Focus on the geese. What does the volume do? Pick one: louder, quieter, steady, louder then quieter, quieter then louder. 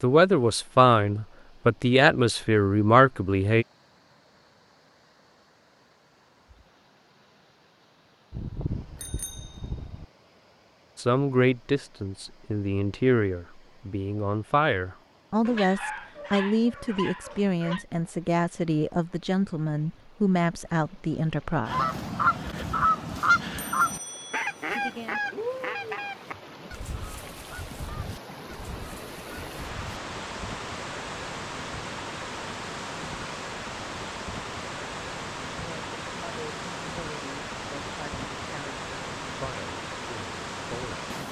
quieter.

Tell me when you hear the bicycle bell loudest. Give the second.
9 s.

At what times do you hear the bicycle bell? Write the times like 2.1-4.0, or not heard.
8.3-10.1, 23.6-25.1.